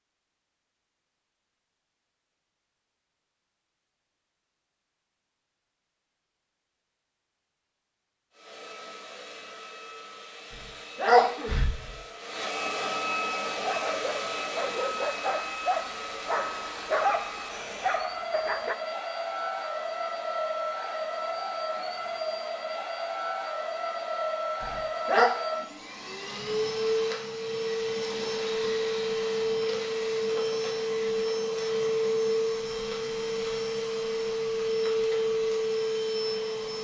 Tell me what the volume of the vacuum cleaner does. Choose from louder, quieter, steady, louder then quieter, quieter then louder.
louder.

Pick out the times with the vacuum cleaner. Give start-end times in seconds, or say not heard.
8.3-36.7.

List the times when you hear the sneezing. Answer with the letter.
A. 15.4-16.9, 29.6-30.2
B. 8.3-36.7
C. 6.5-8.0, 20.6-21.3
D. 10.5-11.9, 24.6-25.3
D.